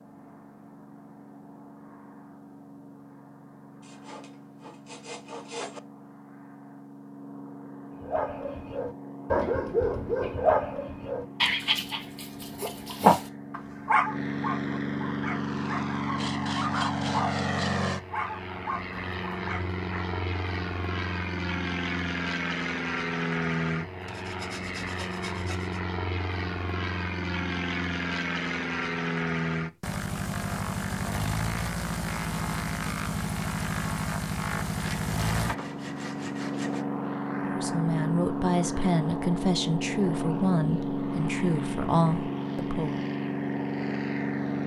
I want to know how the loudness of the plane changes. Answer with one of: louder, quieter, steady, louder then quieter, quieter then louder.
louder.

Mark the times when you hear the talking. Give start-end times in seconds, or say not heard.
37.4-43.0.